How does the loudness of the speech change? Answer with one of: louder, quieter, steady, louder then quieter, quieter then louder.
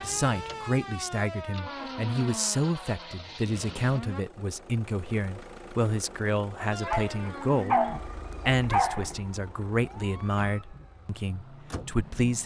steady.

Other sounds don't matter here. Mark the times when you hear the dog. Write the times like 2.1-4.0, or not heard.
6.7-9.2.